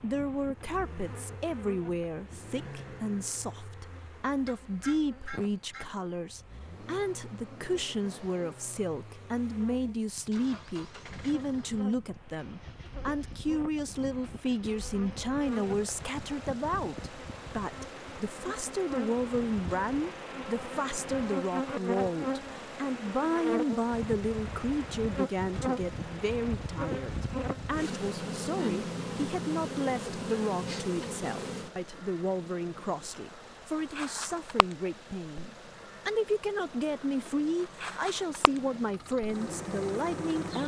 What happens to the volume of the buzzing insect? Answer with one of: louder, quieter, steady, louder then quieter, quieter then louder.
louder then quieter.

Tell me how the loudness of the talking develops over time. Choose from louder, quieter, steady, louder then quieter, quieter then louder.
steady.